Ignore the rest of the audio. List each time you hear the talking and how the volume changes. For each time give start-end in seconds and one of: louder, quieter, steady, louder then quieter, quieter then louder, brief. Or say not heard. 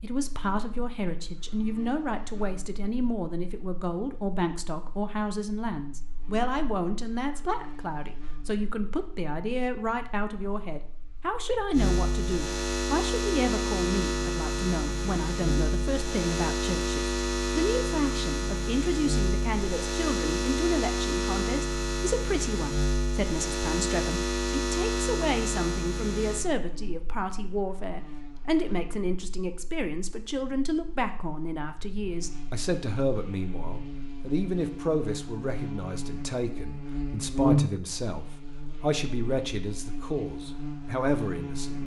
0.0-41.8 steady.